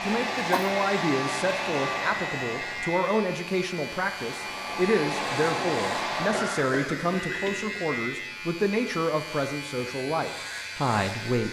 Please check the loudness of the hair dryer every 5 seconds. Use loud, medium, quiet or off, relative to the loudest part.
loud, loud, off.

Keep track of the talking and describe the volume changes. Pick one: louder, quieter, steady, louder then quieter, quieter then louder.
steady.